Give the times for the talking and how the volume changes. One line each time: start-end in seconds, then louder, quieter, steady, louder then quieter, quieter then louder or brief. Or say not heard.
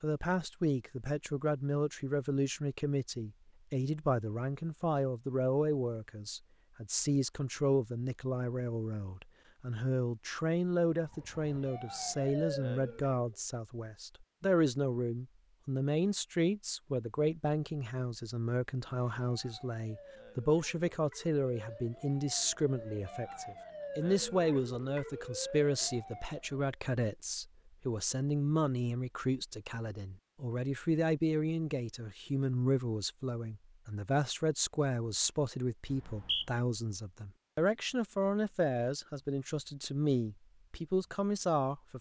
0.0-41.9 steady.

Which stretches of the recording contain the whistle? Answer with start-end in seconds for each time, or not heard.
35.9-36.5.